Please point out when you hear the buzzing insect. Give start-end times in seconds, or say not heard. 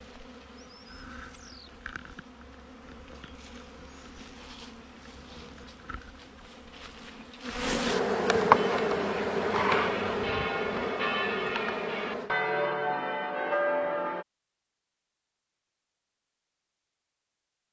0.0-12.3.